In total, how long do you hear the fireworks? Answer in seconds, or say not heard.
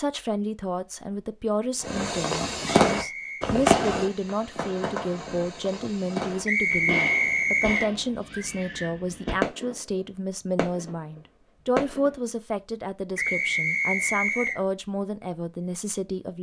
10 s.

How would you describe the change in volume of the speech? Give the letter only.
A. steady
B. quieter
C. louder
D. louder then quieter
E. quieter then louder
A.